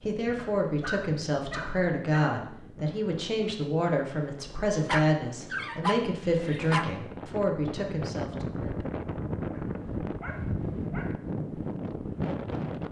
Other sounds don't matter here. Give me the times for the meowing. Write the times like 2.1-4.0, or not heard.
not heard.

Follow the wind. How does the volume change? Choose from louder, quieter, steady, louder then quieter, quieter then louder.
louder.